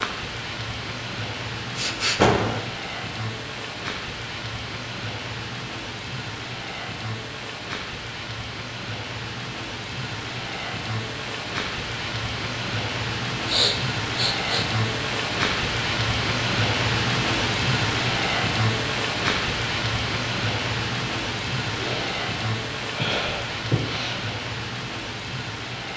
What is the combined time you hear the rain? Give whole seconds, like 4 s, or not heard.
26 s.